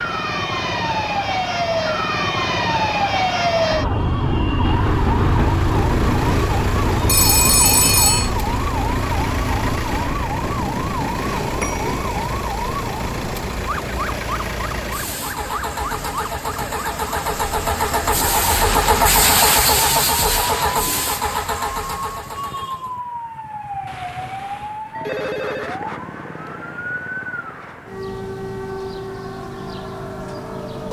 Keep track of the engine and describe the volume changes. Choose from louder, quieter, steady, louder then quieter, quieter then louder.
louder.